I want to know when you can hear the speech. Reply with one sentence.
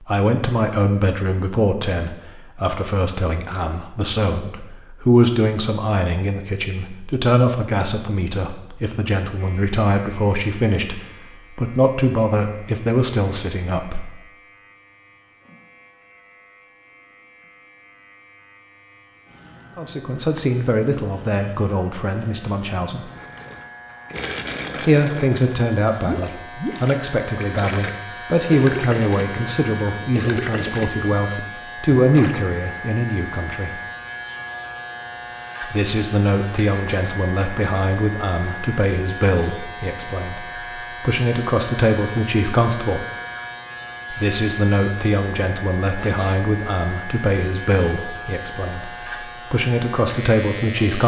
You can hear the speech from 0.0 to 14.1 s, from 19.8 to 23.1 s, from 24.9 to 33.8 s, from 35.6 to 43.0 s and from 44.1 to 51.0 s.